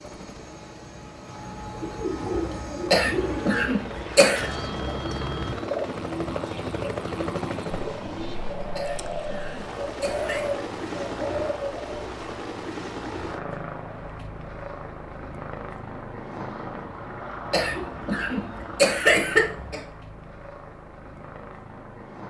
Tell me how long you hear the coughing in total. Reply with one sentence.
The coughing can be heard for 6 seconds in total.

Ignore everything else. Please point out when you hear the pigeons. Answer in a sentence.
The pigeons can be heard from 1.6 to 12.0 s.